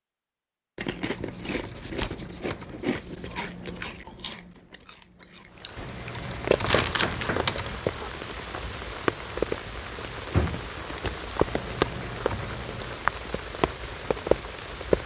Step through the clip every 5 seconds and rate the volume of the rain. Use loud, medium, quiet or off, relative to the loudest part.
off, loud, loud.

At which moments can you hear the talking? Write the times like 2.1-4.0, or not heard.
not heard.